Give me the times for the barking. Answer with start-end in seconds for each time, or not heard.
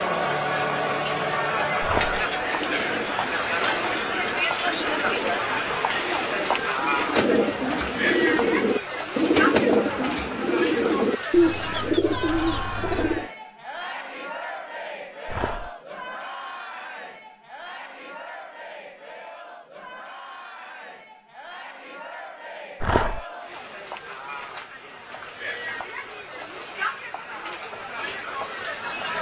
1.8-2.2, 15.2-15.7, 22.8-23.2.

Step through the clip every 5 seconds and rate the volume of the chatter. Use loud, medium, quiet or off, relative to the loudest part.
loud, loud, medium, quiet, quiet, medium.